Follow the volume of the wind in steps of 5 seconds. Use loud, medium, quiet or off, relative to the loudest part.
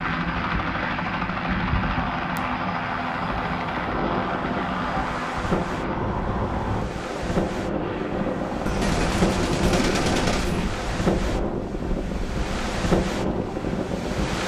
medium, loud, loud.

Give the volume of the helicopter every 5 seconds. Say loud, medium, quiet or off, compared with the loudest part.
loud, loud, medium.